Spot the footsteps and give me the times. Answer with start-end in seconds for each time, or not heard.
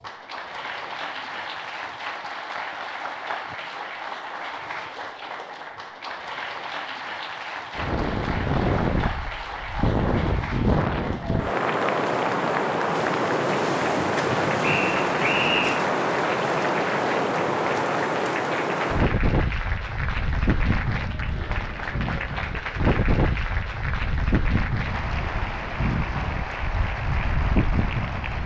not heard.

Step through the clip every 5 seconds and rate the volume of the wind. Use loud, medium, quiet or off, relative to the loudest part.
off, loud, loud, loud, medium, medium.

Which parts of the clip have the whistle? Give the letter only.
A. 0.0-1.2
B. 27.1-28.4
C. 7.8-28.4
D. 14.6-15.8
D.